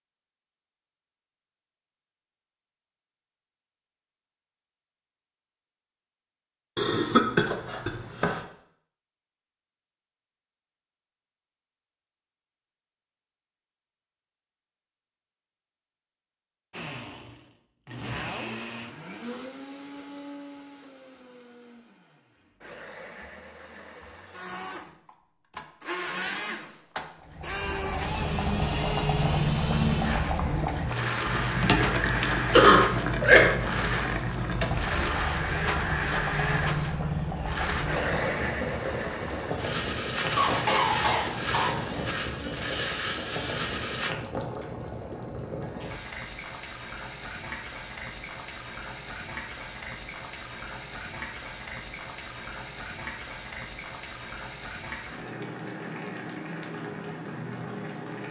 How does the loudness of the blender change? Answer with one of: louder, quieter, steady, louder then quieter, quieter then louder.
louder.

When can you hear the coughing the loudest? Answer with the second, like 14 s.
33 s.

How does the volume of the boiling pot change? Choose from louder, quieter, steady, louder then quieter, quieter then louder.
quieter.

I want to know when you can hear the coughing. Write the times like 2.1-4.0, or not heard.
6.8-8.4, 32.5-33.5, 40.4-41.9.